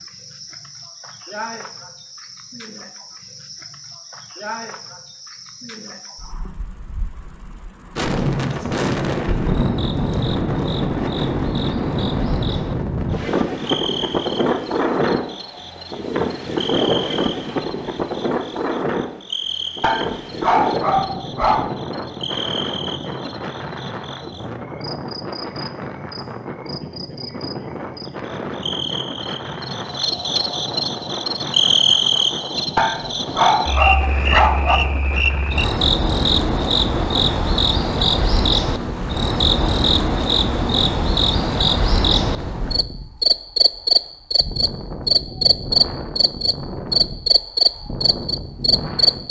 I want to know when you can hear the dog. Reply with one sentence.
The dog can be heard from 19.8 to 21.7 s and from 32.8 to 34.8 s.